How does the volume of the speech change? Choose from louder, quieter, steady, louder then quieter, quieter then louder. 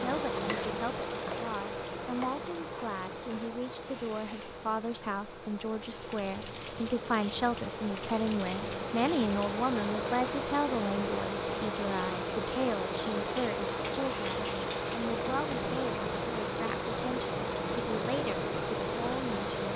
louder then quieter.